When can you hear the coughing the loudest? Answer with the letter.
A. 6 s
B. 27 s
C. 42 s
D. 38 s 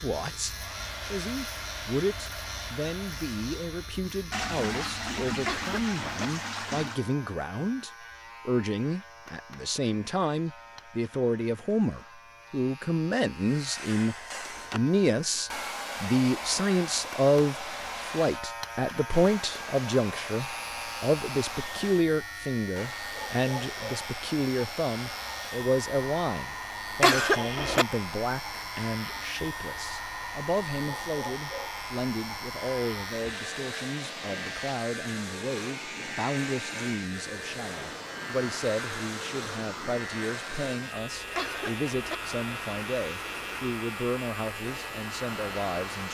B.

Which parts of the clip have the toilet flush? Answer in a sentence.
You can hear the toilet flush from 4.3 to 7.0 s.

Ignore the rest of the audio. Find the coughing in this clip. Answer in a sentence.
The coughing can be heard from 5.5 to 6.3 s, from 27.0 to 27.9 s and from 41.4 to 42.1 s.